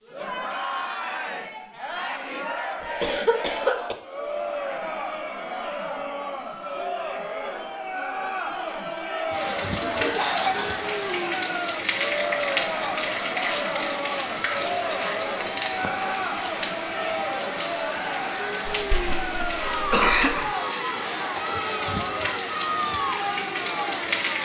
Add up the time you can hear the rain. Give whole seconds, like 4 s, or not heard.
15 s.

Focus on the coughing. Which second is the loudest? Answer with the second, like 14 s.
20 s.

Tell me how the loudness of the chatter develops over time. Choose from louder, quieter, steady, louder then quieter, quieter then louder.
steady.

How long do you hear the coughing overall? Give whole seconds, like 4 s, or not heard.
4 s.